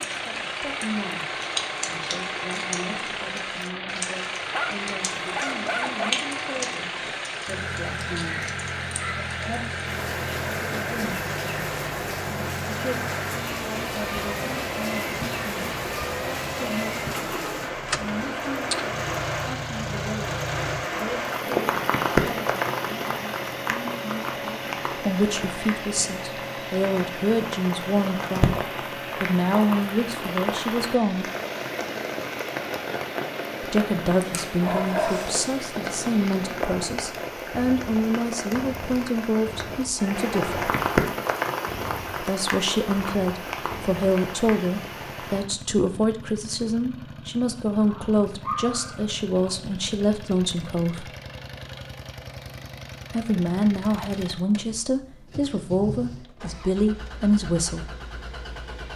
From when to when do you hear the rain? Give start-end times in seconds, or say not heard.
0.0-45.5.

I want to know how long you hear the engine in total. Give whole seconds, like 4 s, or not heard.
59 s.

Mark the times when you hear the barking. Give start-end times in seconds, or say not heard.
4.5-6.1, 34.2-35.5, 47.9-49.5.